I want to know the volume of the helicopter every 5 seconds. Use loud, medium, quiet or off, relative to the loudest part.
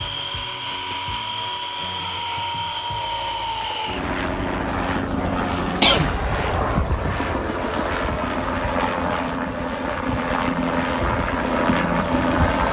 medium, loud, loud.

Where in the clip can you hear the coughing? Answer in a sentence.
You can hear the coughing from 4.9 to 6.2 s.